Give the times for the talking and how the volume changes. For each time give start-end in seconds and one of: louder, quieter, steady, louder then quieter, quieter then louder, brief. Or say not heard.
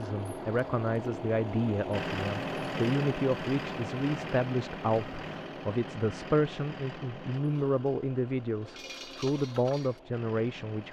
0.0-10.8 steady.